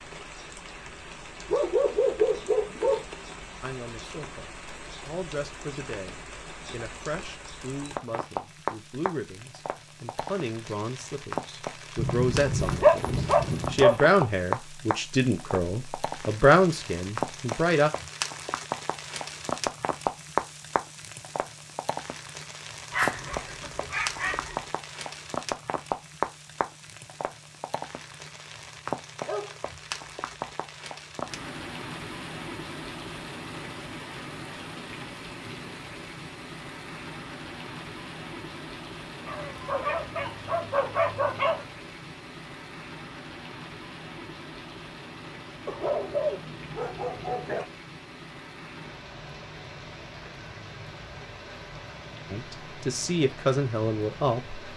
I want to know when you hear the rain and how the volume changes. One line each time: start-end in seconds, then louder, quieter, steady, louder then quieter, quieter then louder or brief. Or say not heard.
0.0-54.7 louder then quieter.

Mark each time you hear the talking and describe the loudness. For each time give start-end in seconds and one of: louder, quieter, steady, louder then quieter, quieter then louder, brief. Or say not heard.
3.6-17.9 louder
52.3-54.6 brief.